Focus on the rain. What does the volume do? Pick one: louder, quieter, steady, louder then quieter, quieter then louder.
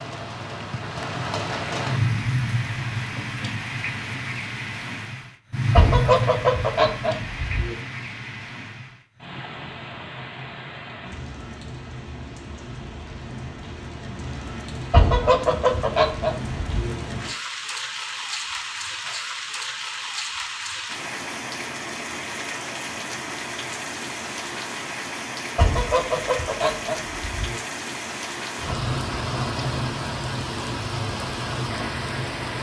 quieter then louder.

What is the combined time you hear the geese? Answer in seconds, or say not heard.
6 s.